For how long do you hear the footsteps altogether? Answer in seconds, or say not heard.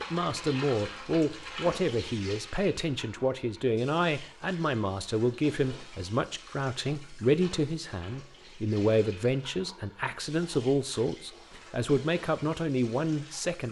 not heard.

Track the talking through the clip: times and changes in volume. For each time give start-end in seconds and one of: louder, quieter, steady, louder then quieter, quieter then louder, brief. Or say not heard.
0.0-13.6 steady.